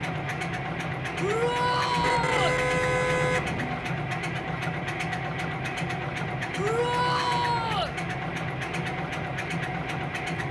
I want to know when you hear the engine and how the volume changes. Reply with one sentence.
The engine can be heard from 0.0 to 10.4 s, at a steady volume.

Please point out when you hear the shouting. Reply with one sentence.
The shouting can be heard from 1.2 to 2.6 s and from 6.5 to 8.0 s.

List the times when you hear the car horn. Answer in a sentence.
The car horn can be heard from 1.9 to 3.9 s.